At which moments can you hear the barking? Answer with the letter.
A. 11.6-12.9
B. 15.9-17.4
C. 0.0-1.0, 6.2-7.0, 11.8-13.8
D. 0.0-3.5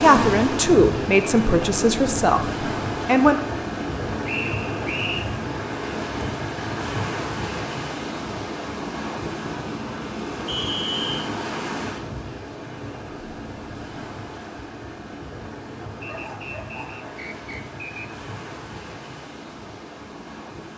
B.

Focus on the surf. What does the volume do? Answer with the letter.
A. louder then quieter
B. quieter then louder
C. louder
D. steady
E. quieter
E.